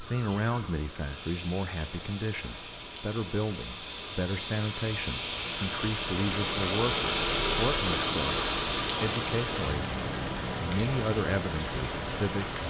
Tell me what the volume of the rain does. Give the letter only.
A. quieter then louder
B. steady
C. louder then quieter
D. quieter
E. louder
E.